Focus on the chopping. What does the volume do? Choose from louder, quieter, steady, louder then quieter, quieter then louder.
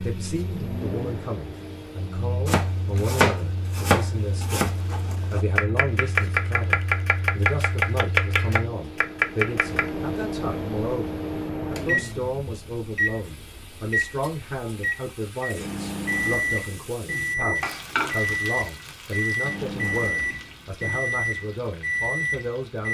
quieter then louder.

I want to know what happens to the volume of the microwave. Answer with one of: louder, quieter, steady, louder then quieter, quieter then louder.
louder.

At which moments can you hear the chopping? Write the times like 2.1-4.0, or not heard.
2.5-9.9.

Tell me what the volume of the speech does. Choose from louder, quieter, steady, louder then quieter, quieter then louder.
steady.